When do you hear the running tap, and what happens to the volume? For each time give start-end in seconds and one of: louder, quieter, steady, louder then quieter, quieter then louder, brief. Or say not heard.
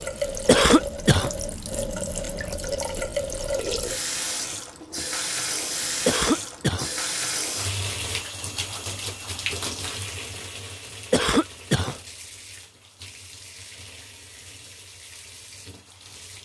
0.0-16.4 quieter.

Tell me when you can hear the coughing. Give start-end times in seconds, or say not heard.
0.5-1.3, 6.0-6.9, 11.1-11.9.